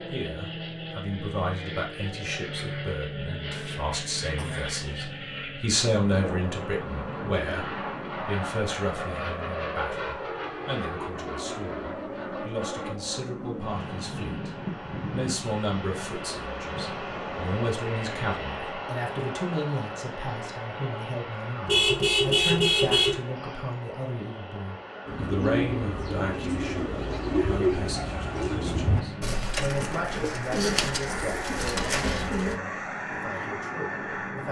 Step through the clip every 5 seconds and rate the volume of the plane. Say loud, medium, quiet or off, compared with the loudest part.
loud, loud, loud, loud, medium, medium, loud.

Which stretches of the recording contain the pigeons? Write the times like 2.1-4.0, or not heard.
25.1-32.5.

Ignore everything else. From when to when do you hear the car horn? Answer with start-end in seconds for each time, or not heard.
21.6-23.1.